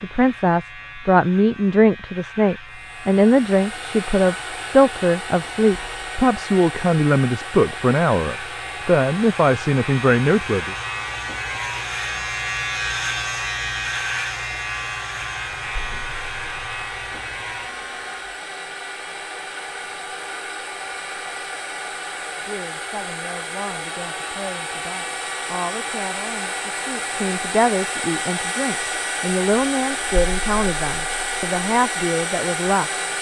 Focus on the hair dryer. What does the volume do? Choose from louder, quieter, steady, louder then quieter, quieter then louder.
louder.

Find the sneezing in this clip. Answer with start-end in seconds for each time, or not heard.
not heard.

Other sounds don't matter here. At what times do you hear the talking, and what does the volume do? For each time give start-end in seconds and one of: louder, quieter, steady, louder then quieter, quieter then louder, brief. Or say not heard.
0.0-10.8 steady
22.4-32.9 louder.